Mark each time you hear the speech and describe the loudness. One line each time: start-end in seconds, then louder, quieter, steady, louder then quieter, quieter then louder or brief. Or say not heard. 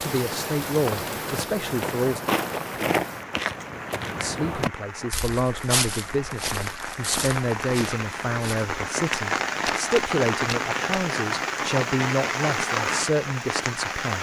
0.0-2.2 brief
4.2-14.1 steady.